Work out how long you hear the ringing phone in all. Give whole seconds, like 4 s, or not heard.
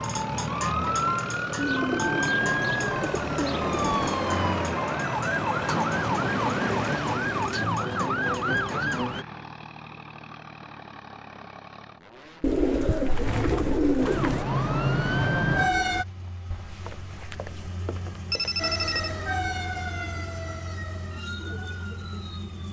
3 s.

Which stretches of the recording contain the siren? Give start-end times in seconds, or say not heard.
0.0-9.2, 14.0-16.1, 18.6-22.6.